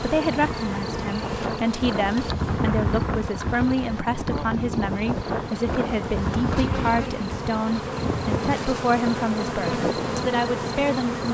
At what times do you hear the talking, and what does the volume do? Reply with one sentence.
The talking can be heard from 0.0 to 11.2 s, at a steady volume.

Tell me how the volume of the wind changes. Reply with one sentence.
The volume of the wind stays about the same.